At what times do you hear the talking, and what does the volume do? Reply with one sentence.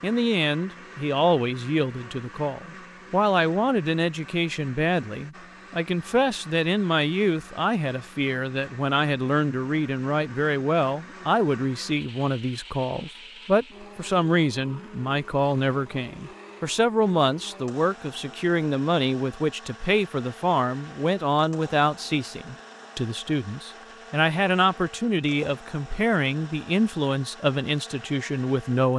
The talking can be heard from 0.0 to 28.9 s, at a steady volume.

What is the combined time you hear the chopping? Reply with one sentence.
You can't hear the chopping here.